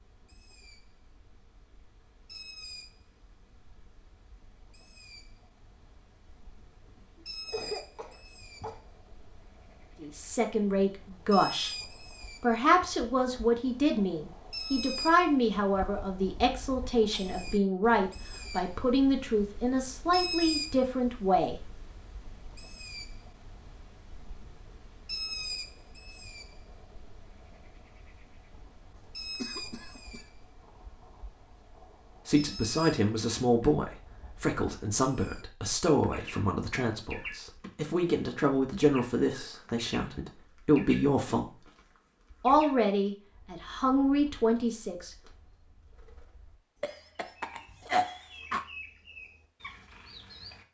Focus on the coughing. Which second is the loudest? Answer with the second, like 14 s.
48 s.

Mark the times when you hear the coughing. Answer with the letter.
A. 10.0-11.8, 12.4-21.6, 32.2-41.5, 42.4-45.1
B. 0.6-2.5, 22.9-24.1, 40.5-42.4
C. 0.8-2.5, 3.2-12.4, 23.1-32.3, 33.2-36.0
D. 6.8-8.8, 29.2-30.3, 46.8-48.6
D.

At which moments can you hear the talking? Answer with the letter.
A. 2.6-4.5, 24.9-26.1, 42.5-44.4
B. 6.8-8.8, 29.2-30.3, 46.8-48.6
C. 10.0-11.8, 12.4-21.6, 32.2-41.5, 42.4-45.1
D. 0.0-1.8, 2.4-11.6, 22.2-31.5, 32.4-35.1
C.